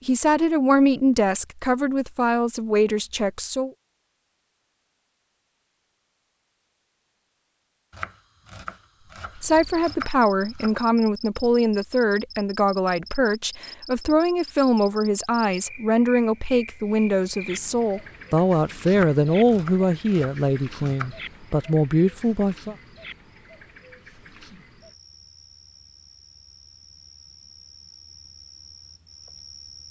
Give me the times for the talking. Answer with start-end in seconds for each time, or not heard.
0.1-3.7, 9.4-22.8.